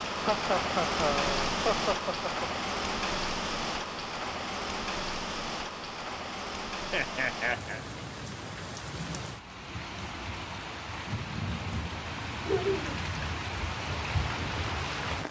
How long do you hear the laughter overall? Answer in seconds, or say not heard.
4 s.